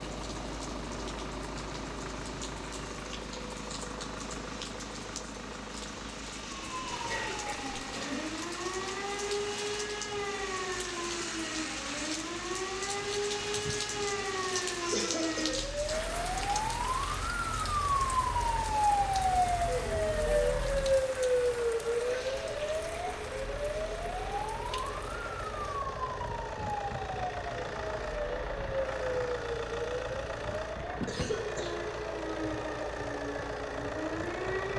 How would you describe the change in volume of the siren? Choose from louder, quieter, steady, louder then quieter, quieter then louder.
louder then quieter.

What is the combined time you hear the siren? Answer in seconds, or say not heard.
28 s.